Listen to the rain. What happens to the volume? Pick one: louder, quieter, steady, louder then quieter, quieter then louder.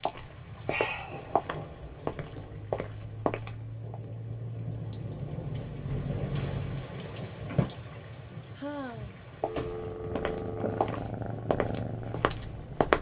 louder then quieter.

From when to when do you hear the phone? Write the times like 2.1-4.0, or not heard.
9.4-10.8.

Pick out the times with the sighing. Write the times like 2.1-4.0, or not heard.
0.7-1.4, 8.6-9.2.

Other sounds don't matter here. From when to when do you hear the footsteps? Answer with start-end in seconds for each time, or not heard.
0.0-4.0, 9.4-12.9.